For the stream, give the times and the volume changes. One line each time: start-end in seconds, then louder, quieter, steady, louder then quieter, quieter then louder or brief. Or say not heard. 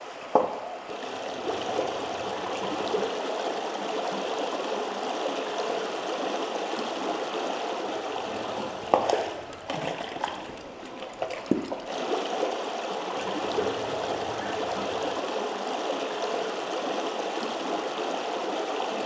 0.0-19.0 steady.